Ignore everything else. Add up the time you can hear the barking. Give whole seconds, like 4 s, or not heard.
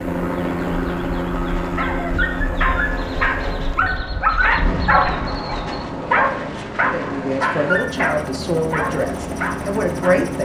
9 s.